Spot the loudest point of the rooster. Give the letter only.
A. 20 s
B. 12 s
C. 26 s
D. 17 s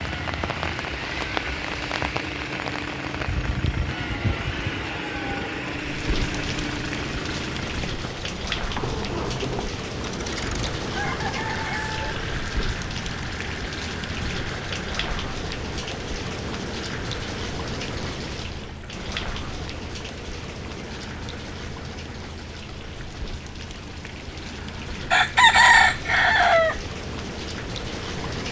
C.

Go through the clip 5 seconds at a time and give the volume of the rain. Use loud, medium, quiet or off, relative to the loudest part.
loud, loud, loud, loud, medium, loud.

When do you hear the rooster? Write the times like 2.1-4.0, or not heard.
10.8-12.2, 25.1-26.8.